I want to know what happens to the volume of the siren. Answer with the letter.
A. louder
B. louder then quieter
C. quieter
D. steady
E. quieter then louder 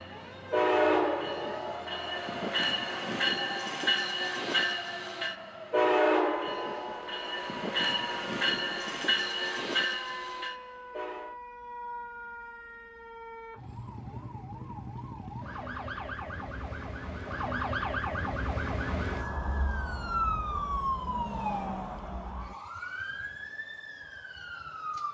A.